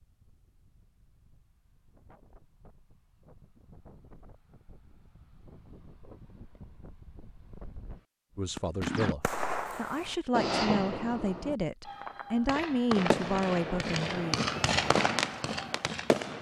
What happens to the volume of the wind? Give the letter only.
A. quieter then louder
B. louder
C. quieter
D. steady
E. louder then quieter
B.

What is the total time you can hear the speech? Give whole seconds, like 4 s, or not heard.
6 s.